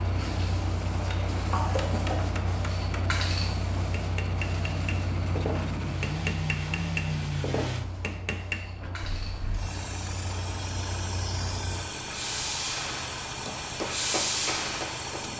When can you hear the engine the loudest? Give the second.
7 s.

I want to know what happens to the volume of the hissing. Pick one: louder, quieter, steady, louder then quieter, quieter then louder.
quieter then louder.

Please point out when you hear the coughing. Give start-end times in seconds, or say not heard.
1.1-2.5.